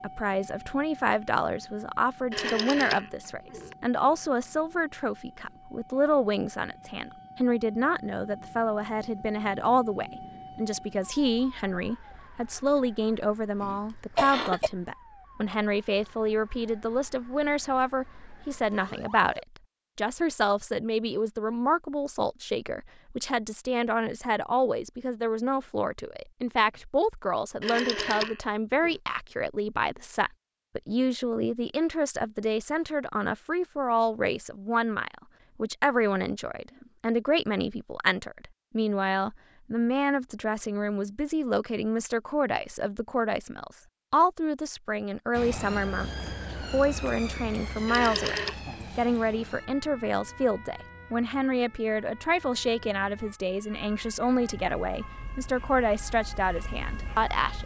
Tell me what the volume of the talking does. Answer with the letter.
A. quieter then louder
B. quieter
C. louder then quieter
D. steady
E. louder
D.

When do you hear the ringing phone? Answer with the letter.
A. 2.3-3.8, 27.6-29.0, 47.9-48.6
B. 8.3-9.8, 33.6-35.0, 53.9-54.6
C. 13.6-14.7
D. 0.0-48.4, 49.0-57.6
A.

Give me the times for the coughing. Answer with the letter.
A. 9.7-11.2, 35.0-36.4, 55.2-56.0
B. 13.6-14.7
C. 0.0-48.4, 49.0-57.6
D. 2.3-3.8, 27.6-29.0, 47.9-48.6
B.